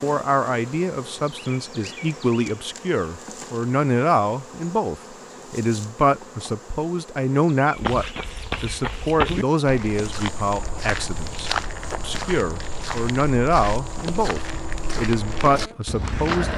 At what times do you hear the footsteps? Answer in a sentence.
The footsteps can be heard from 7.7 to 16.5 s.